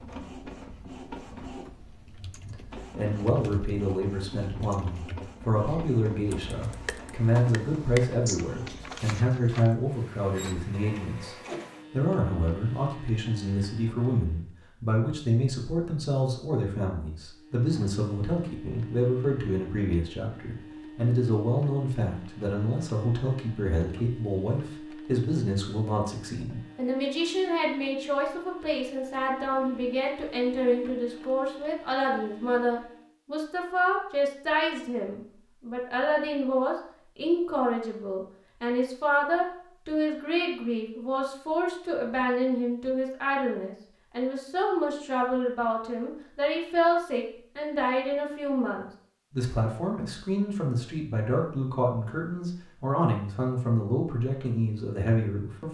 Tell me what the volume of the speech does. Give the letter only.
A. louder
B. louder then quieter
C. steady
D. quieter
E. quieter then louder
C.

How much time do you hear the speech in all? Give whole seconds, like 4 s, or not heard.
53 s.